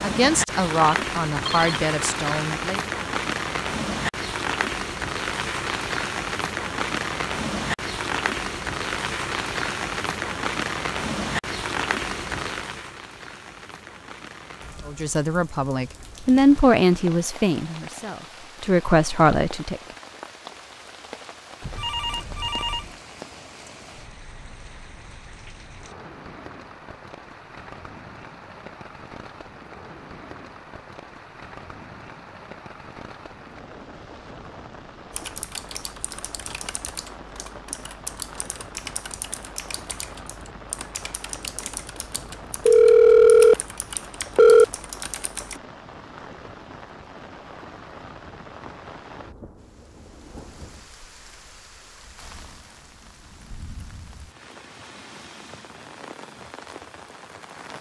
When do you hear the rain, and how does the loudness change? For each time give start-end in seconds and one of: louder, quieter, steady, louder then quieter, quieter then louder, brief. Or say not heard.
0.0-57.7 quieter.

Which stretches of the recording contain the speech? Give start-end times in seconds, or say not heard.
0.0-2.8, 14.8-19.8.